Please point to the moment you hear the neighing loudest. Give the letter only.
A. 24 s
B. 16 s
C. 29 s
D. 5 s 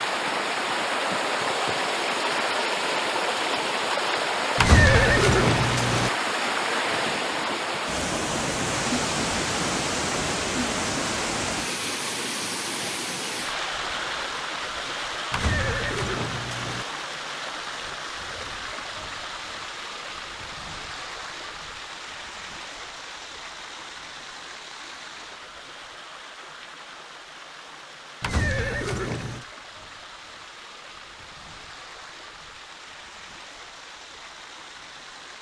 D.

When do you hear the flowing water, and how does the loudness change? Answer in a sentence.
The flowing water can be heard from 0.0 to 35.3 s, getting quieter.